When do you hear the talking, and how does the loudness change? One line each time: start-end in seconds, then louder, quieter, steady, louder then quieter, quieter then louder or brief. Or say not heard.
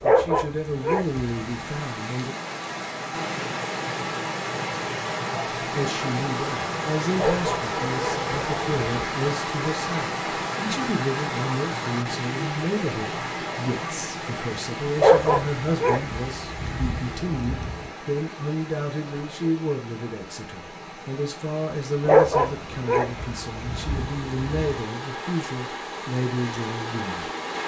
0.0-2.4 brief
5.7-27.3 steady.